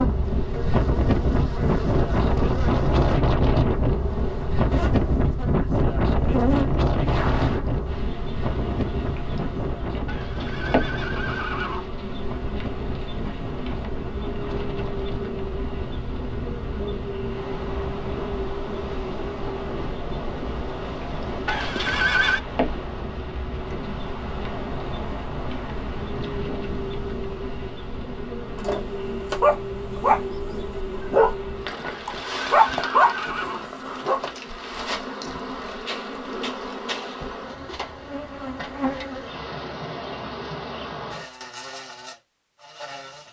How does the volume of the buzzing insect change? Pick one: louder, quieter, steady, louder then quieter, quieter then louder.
steady.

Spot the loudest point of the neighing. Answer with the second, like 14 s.
22 s.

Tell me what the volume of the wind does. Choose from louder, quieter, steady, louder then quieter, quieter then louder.
quieter.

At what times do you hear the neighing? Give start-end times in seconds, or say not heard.
10.1-11.9, 21.4-22.4, 31.9-33.6.